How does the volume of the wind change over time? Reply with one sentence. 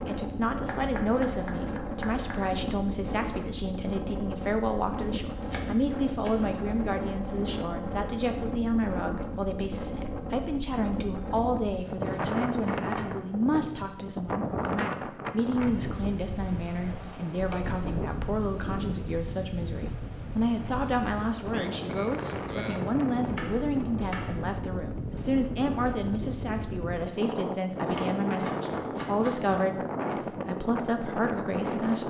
The volume of the wind stays about the same.